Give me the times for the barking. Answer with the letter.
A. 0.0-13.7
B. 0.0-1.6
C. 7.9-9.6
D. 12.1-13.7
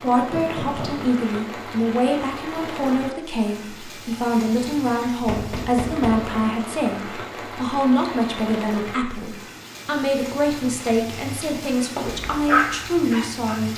D.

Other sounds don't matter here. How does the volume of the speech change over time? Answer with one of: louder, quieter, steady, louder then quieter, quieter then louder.
steady.